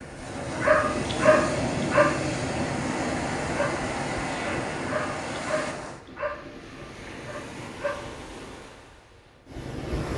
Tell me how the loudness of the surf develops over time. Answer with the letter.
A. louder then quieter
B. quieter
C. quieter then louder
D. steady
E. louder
B.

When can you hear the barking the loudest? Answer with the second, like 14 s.
1 s.